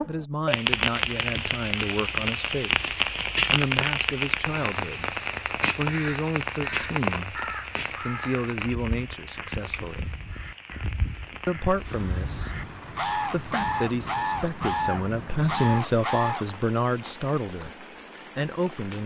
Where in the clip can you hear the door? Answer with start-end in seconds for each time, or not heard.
not heard.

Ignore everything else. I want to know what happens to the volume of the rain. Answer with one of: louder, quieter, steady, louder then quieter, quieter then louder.
quieter.